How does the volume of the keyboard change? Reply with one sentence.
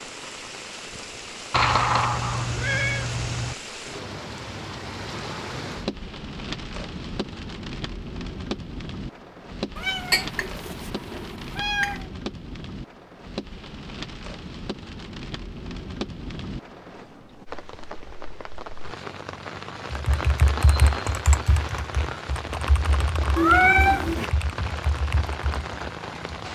The loudness of the keyboard goes down.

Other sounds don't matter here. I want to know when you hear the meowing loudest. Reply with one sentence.
The volume of the meowing peaks at 24 seconds.